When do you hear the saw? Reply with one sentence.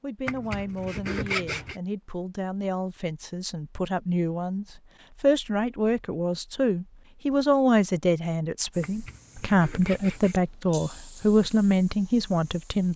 You can hear the saw from 0.2 to 1.8 s and from 8.8 to 10.3 s.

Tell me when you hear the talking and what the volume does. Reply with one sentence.
The talking can be heard from 0.0 to 12.9 s, getting louder.